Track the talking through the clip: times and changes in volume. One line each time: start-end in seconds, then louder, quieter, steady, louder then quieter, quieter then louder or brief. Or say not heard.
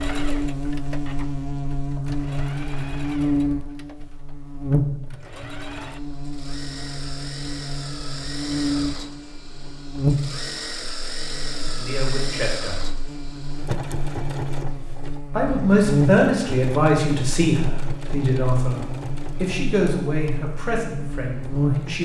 11.5-12.8 brief
15.3-22.0 quieter.